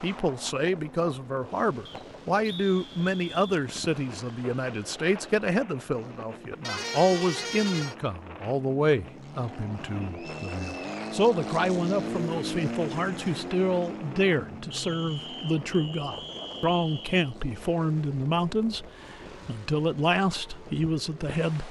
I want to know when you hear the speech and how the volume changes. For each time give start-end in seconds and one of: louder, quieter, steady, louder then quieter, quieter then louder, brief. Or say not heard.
0.0-21.6 steady.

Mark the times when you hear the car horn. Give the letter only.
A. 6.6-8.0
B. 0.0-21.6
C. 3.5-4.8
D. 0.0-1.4
A.